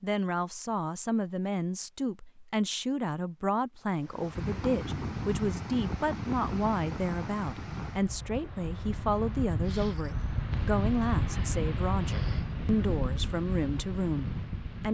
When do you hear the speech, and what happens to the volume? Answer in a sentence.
You can hear the speech from 0.0 to 14.8 s, at a steady volume.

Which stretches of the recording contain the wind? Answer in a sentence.
The wind can be heard from 4.0 to 14.8 s.